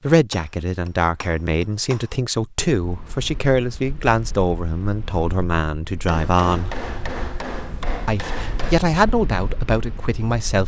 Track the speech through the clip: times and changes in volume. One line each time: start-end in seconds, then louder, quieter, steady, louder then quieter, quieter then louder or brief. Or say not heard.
0.0-6.8 steady
8.1-10.6 brief.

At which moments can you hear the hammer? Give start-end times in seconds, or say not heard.
0.3-2.1, 6.0-8.8.